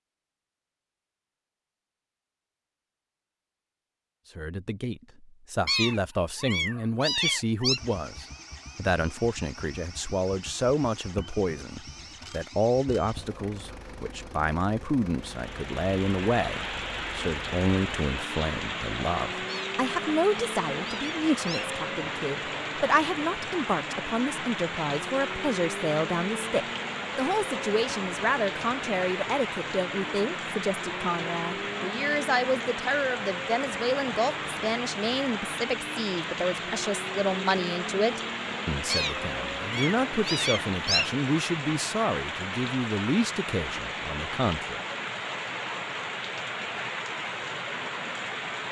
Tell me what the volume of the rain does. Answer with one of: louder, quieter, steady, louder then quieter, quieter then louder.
steady.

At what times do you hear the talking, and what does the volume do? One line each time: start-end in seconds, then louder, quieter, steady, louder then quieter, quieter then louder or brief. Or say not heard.
4.3-44.8 steady.